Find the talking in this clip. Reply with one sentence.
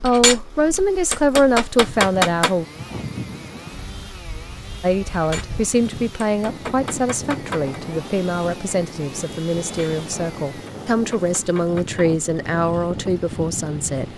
You can hear the talking from 0.0 to 2.6 s and from 4.8 to 14.1 s.